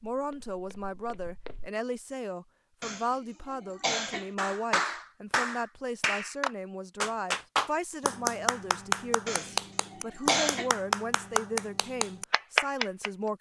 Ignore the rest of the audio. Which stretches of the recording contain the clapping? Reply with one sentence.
The clapping can be heard from 4.3 to 13.1 s.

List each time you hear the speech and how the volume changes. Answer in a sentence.
The speech can be heard from 0.0 to 13.3 s, at a steady volume.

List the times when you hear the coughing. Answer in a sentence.
You can hear the coughing from 2.8 to 4.3 s and from 9.2 to 10.7 s.